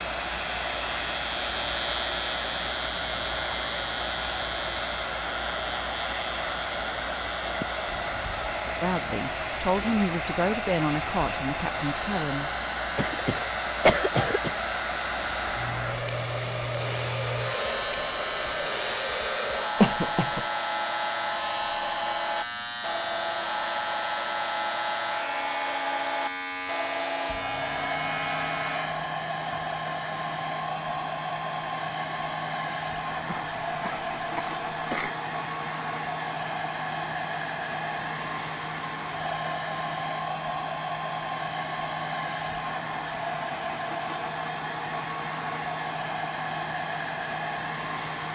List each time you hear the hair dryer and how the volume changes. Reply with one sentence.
The hair dryer can be heard from 0.0 to 48.3 s, at a steady volume.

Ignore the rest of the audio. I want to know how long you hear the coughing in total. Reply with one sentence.
The coughing can be heard for 4 seconds in total.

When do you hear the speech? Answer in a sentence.
The speech can be heard from 8.8 to 12.5 s.